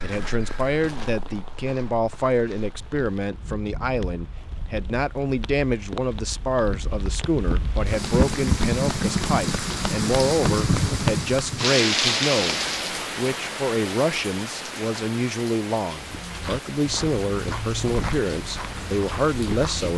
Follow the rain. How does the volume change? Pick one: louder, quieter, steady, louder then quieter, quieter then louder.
louder then quieter.